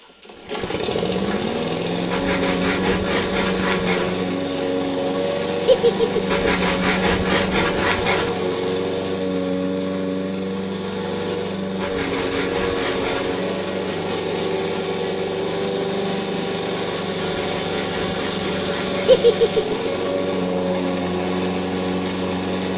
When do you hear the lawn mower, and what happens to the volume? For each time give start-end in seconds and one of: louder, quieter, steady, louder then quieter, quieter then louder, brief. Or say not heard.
0.0-22.7 steady.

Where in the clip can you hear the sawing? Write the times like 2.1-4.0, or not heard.
2.1-4.1, 6.2-8.3, 11.8-13.4, 17.1-19.2.